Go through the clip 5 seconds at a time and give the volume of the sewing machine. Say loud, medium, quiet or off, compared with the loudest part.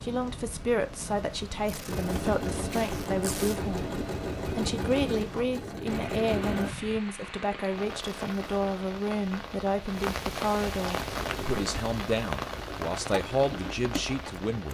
loud, loud, medium.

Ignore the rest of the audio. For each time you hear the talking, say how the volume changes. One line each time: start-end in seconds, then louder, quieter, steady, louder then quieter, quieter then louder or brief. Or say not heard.
0.0-14.7 steady.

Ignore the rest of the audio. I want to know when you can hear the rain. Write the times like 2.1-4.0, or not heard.
0.0-14.7.